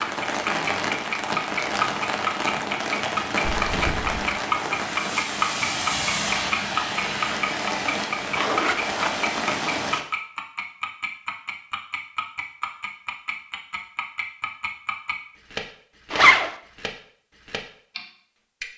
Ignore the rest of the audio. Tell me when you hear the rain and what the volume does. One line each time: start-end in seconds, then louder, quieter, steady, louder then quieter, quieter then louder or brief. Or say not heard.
0.0-10.1 steady.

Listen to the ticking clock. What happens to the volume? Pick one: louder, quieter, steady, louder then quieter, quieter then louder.
quieter.